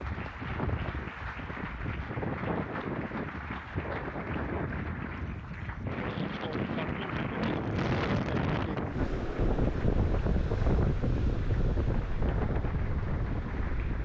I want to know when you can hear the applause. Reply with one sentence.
You can hear the applause from 0.0 to 14.0 s.